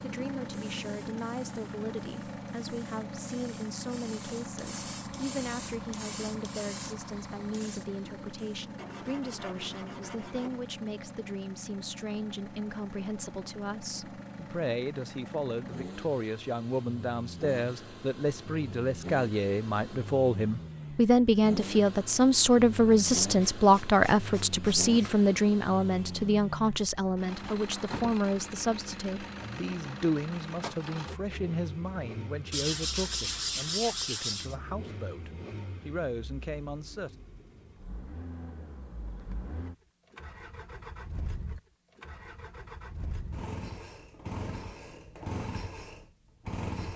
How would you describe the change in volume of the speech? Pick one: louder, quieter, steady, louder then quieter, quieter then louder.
louder then quieter.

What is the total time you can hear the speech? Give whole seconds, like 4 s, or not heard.
37 s.